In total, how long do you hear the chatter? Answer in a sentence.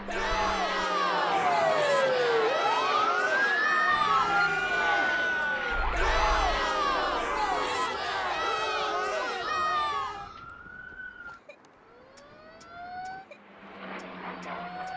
You can hear the chatter for 10 seconds altogether.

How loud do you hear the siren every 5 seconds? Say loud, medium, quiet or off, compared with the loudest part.
loud, medium, quiet.